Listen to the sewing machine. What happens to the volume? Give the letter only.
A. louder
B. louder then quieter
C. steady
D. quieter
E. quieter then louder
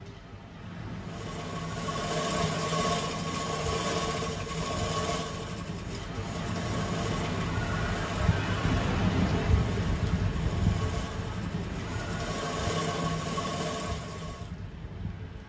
E.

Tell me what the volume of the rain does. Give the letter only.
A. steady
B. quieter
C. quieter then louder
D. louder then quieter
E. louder
D.